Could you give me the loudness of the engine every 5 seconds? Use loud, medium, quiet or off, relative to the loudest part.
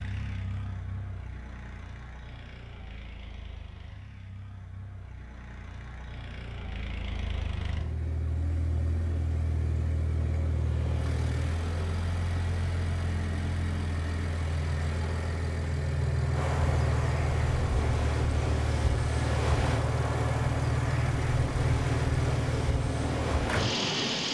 quiet, medium, medium, loud, loud.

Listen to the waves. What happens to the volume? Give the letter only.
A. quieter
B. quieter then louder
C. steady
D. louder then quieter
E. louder
E.